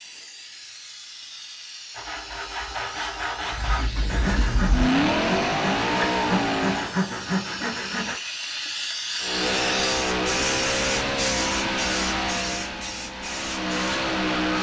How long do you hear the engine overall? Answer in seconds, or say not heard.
9 s.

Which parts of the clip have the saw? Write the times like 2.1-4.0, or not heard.
1.9-8.2.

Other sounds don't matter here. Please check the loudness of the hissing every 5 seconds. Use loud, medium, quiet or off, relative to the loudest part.
medium, loud, loud.